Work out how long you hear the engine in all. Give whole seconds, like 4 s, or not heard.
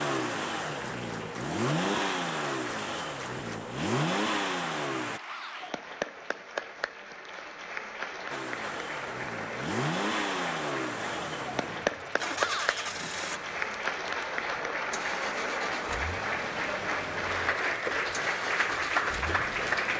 17 s.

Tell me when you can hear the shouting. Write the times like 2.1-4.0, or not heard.
5.2-5.8, 12.3-12.8.